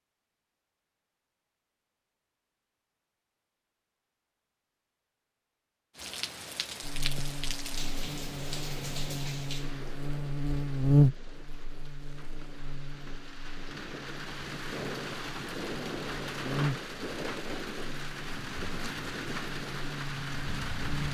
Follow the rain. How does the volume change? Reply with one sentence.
The loudness of the rain goes down, then up.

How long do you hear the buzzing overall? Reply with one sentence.
The buzzing can be heard for 14 seconds in total.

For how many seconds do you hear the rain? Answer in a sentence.
You can hear the rain for 15 seconds altogether.